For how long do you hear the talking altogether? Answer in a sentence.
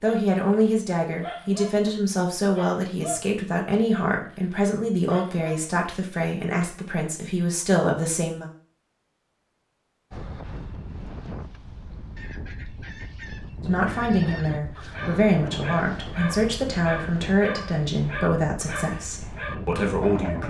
You can hear the talking for 15 seconds altogether.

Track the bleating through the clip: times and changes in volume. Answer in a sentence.
You can't hear the bleating here.